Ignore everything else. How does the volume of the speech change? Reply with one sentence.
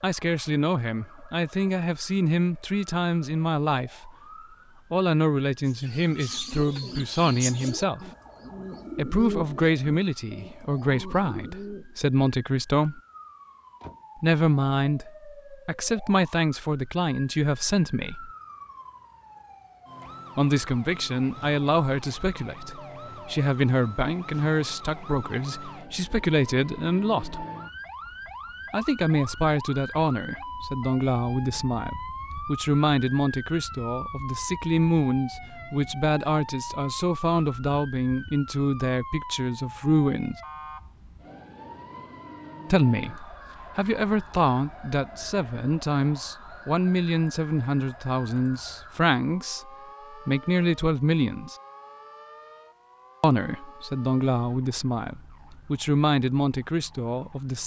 The loudness of the speech stays about the same.